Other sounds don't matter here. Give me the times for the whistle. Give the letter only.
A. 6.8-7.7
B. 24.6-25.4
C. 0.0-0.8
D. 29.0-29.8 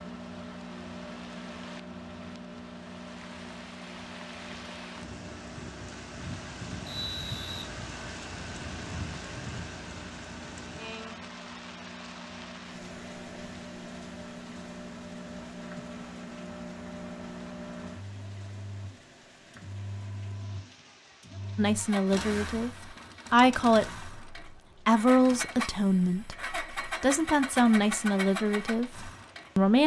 A.